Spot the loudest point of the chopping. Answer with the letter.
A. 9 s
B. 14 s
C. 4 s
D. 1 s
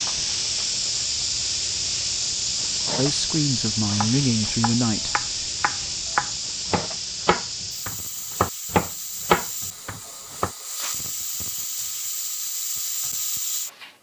A.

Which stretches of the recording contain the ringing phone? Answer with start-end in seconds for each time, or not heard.
not heard.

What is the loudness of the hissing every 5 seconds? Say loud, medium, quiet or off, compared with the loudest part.
loud, medium, medium.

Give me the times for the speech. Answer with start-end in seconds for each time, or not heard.
3.0-5.5.